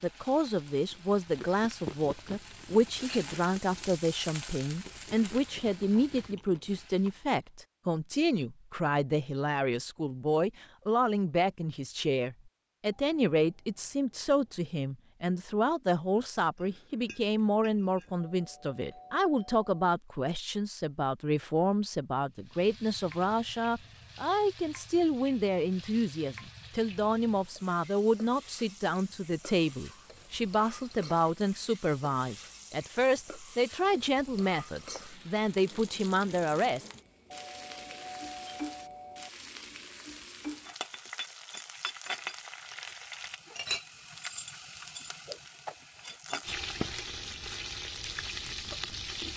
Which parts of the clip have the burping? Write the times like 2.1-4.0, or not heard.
not heard.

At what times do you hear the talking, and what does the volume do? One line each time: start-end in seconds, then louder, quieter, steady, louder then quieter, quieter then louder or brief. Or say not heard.
0.0-36.9 steady.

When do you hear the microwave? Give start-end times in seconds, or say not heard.
not heard.